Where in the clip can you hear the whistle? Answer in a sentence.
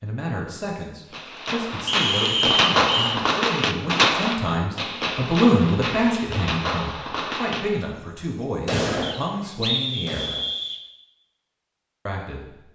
The whistle can be heard from 1.9 to 3.1 s and from 9.0 to 10.8 s.